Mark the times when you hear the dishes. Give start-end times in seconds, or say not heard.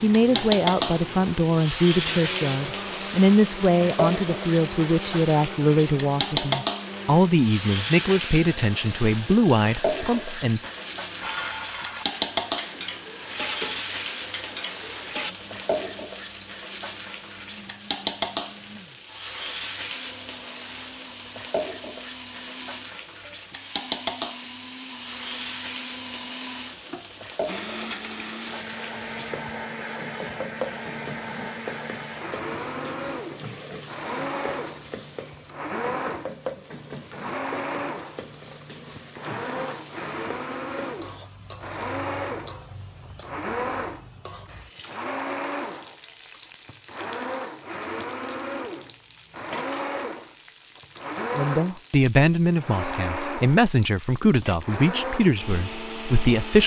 10.1-15.3.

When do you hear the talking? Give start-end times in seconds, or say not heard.
0.0-10.6, 51.4-56.6.